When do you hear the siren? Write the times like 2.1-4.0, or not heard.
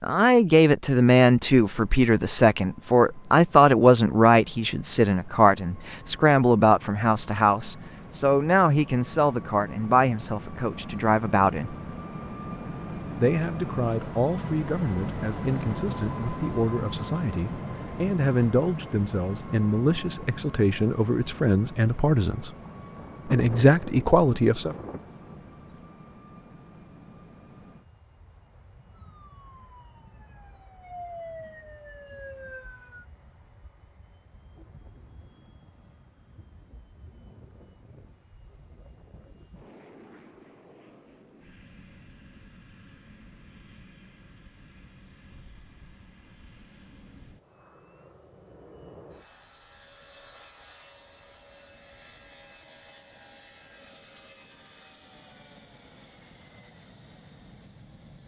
29.1-33.0.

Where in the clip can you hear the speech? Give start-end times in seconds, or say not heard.
0.0-11.8, 13.2-22.5, 23.2-24.8.